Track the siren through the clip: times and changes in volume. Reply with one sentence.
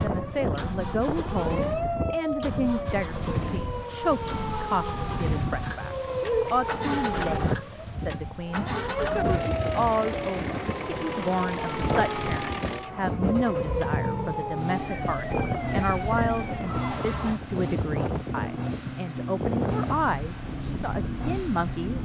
The siren can be heard from 0.0 to 17.4 s, at a steady volume.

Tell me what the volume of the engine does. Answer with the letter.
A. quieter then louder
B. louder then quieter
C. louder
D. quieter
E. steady
E.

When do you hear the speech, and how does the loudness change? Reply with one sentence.
The speech can be heard from 0.0 to 22.0 s, at a steady volume.